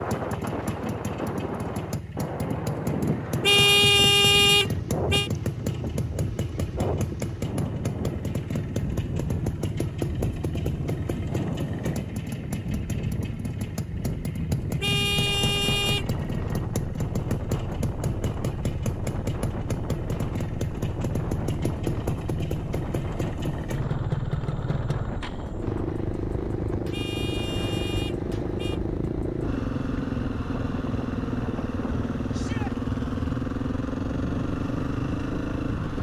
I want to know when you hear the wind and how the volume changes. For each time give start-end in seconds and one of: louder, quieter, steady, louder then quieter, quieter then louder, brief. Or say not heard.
0.0-35.9 steady.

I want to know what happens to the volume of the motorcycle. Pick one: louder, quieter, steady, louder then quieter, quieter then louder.
steady.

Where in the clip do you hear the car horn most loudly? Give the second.
4 s.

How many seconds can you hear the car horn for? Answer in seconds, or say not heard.
5 s.